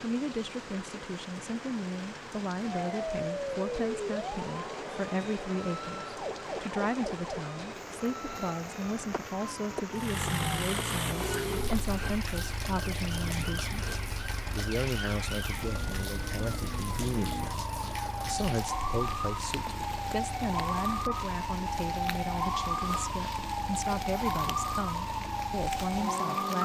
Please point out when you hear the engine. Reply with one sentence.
The engine can be heard from 9.9 to 26.5 s.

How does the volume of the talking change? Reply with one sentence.
The loudness of the talking stays about the same.